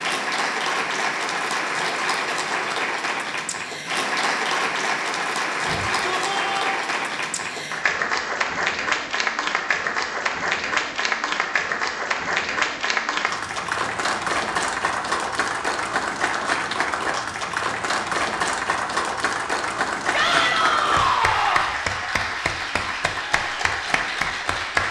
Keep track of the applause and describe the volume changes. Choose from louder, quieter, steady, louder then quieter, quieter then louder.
steady.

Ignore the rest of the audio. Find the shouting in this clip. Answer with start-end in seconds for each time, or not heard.
5.7-6.6, 20.1-21.8.